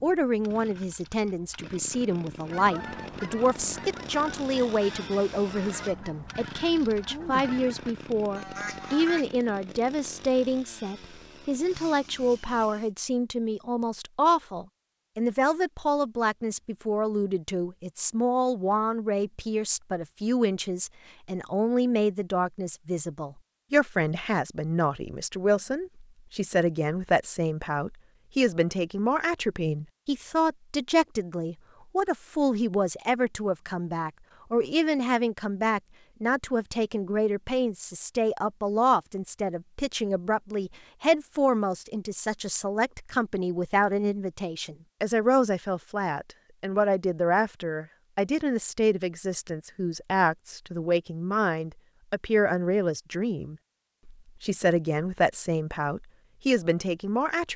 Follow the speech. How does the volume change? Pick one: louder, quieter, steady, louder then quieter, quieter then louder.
steady.